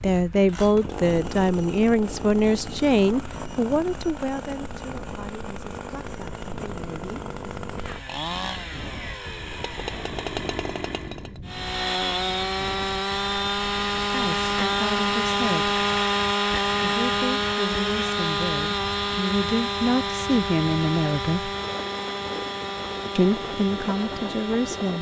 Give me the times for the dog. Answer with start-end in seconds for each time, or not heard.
not heard.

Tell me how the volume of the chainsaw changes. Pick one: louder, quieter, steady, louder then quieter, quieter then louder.
louder then quieter.